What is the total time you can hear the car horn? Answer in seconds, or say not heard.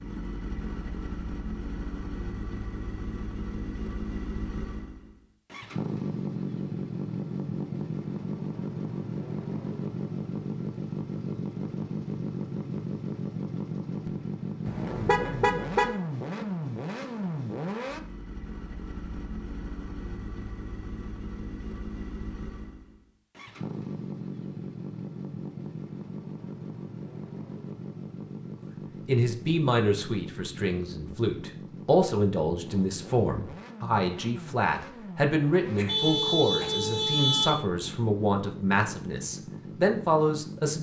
3 s.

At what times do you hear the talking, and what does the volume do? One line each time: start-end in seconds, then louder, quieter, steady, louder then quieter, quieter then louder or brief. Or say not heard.
29.1-40.7 steady.